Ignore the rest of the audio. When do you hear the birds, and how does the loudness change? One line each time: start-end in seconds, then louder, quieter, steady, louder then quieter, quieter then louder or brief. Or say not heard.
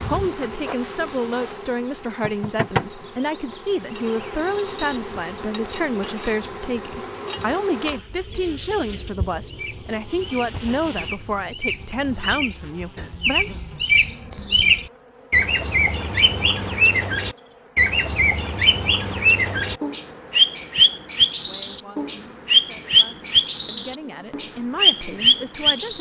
9.4-25.9 louder.